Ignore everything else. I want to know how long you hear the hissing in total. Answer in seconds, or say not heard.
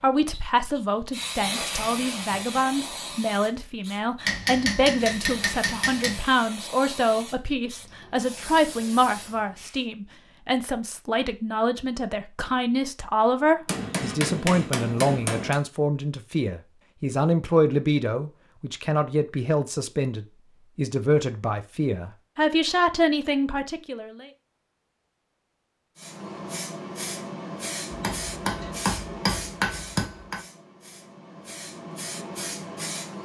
17 s.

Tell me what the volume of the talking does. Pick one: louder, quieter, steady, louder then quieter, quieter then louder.
steady.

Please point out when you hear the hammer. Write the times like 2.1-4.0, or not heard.
4.2-6.2, 13.7-15.6, 27.9-30.4.